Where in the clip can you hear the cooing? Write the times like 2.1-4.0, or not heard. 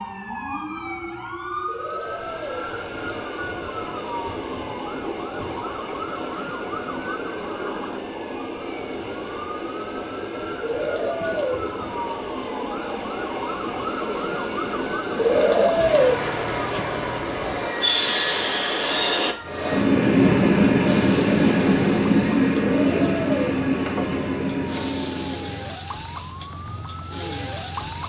1.6-2.6, 10.6-11.6, 15.2-16.1, 22.6-23.6.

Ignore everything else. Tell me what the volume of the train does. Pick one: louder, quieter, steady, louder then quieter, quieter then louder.
louder.